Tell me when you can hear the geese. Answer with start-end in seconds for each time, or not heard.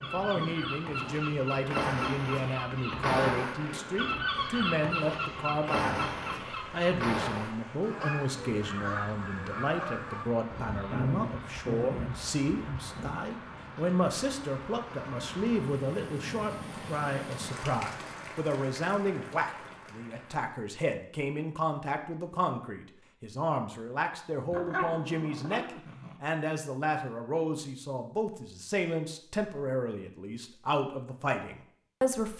0.0-10.8.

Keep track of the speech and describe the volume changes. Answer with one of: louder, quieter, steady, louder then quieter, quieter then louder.
steady.